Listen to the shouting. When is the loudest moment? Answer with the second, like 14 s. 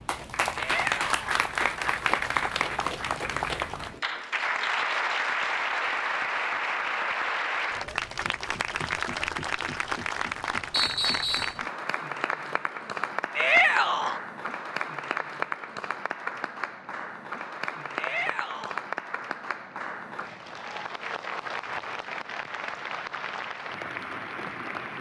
14 s.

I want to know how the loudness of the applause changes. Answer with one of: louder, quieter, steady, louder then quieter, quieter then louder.
quieter.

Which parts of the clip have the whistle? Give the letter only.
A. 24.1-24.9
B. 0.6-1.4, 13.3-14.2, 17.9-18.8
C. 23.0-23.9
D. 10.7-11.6
D.